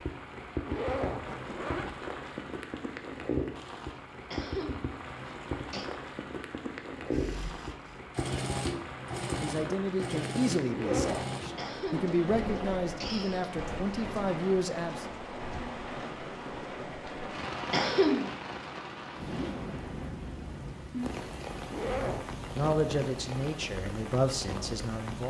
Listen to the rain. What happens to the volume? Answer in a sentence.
The loudness of the rain stays about the same.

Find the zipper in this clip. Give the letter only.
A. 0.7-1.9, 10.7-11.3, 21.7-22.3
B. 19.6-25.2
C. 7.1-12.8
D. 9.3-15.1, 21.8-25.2
A.